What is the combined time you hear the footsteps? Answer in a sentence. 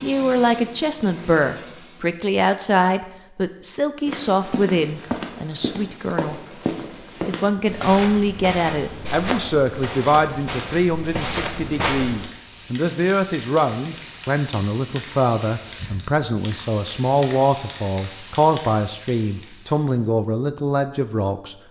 You can hear the footsteps for 8 seconds altogether.